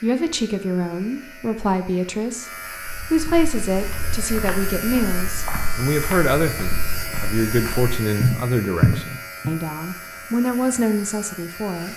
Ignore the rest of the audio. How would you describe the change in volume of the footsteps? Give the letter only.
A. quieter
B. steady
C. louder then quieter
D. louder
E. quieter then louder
D.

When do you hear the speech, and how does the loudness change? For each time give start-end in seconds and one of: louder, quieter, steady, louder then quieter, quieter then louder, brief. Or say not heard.
0.0-11.9 steady.